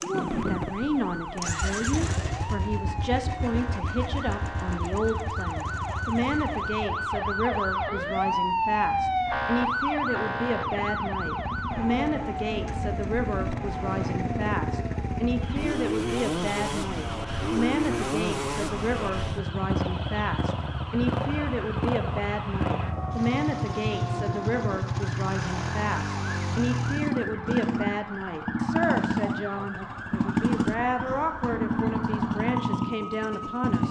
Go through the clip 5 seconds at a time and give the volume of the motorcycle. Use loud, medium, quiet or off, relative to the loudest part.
medium, quiet, medium, loud, loud, loud, loud.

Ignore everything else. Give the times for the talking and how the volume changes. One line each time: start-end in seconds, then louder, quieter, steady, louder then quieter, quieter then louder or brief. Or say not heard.
0.0-33.8 steady.